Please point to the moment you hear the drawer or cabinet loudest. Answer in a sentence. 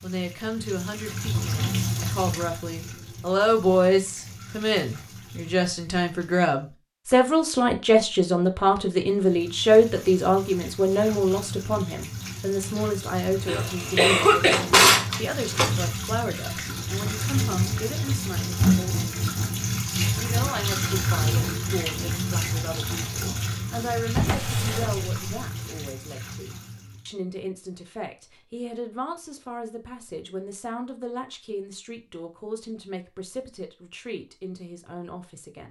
The loudest moment of the drawer or cabinet is at 15 seconds.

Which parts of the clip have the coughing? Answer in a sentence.
The coughing can be heard from 13.4 to 14.6 s.